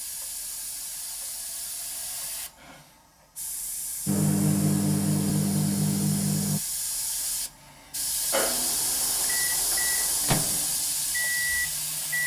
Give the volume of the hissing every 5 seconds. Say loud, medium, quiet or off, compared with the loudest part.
medium, loud, loud.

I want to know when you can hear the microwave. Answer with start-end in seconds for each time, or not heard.
4.0-6.6, 8.3-12.2.